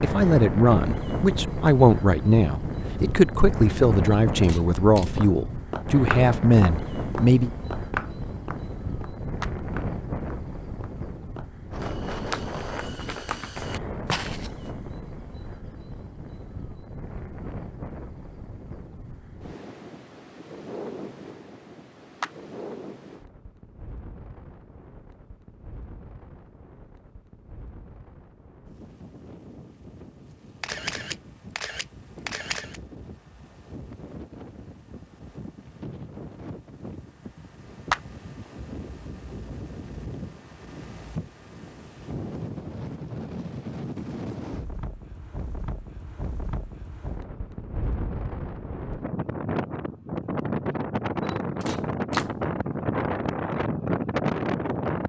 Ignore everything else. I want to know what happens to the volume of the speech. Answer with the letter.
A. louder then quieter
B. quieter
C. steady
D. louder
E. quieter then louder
C.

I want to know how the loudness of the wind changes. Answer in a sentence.
The volume of the wind goes down, then up.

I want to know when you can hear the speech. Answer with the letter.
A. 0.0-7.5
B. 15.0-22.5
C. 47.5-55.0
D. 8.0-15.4
A.